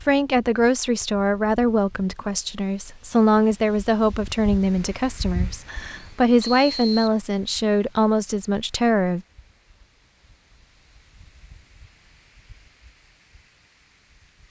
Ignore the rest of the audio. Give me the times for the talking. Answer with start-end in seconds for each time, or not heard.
0.1-9.2.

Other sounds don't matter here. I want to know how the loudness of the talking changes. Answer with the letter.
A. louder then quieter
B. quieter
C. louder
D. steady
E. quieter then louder
D.